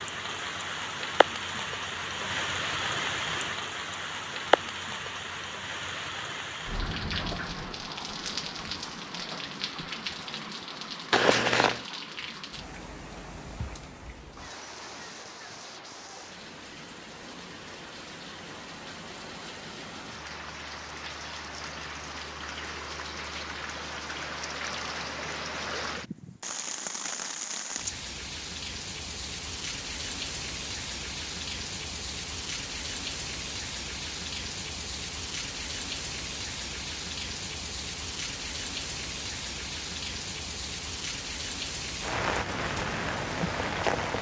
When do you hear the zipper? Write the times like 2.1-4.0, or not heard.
11.1-11.8.